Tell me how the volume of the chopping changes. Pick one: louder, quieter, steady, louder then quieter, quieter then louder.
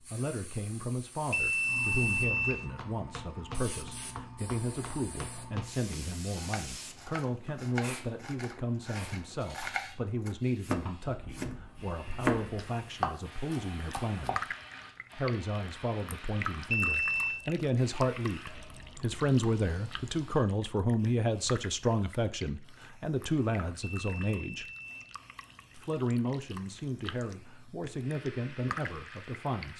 louder.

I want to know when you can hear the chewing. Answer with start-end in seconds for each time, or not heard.
not heard.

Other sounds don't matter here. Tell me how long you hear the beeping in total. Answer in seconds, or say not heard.
3 s.